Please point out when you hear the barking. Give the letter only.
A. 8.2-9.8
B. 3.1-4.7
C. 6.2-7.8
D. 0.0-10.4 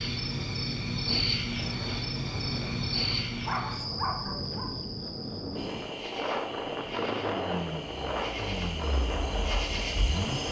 B.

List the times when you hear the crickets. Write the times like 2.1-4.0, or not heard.
0.0-10.4.